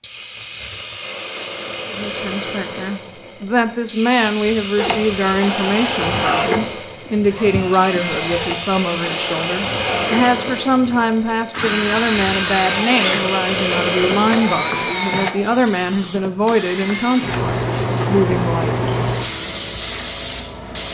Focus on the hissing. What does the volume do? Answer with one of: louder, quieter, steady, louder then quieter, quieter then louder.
louder.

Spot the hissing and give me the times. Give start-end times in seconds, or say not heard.
0.0-20.8.